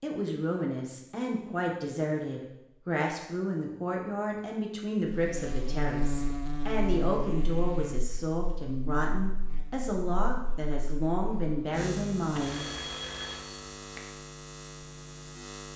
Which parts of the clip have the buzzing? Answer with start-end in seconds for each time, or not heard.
5.0-15.7.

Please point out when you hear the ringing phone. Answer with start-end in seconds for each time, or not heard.
12.3-14.0.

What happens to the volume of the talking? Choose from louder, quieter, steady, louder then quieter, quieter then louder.
steady.